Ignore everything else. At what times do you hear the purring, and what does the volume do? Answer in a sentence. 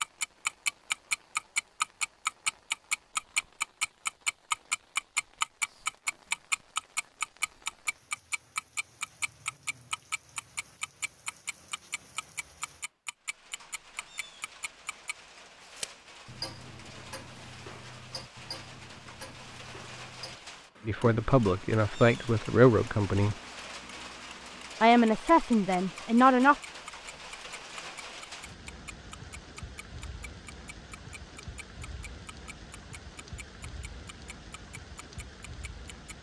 The purring can't be heard in this clip.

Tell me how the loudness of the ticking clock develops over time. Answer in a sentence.
The volume of the ticking clock goes down.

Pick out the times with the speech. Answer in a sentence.
You can hear the speech from 20.9 to 23.4 s and from 24.8 to 26.6 s.